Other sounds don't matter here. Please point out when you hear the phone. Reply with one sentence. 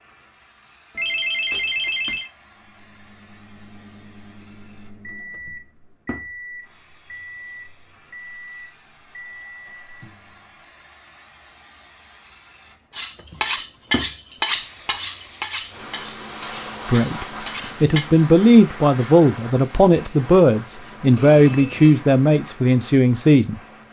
The phone can be heard from 0.9 to 2.3 s and from 21.1 to 21.9 s.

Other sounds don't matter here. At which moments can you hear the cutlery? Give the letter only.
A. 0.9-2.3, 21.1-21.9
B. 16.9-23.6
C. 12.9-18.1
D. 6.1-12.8
C.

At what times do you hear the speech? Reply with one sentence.
You can hear the speech from 16.9 to 23.6 s.